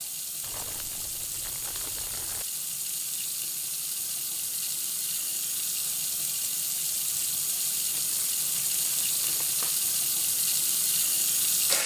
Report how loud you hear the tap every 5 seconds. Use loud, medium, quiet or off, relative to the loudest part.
medium, loud, loud.